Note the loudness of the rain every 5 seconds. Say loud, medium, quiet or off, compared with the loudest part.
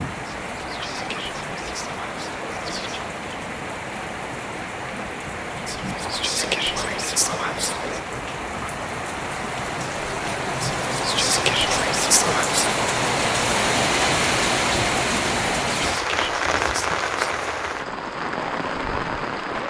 medium, medium, loud, loud.